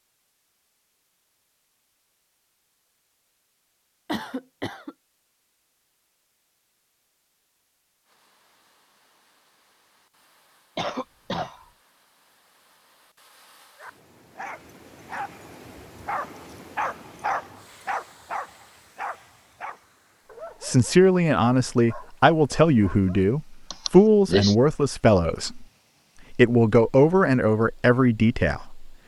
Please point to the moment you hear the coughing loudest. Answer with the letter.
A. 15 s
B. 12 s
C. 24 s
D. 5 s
C.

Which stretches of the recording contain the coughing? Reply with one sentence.
The coughing can be heard from 4.0 to 5.0 s, from 10.8 to 11.7 s and from 23.7 to 24.6 s.